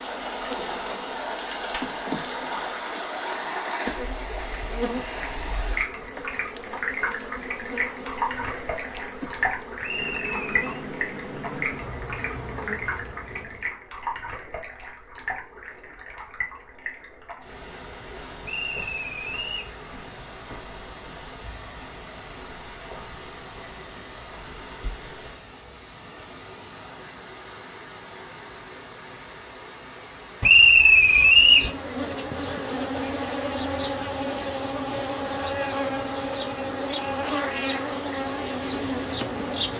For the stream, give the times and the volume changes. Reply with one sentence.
The stream can be heard from 0.0 to 39.7 s, getting quieter.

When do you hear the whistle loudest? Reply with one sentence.
The volume of the whistle peaks at 31 seconds.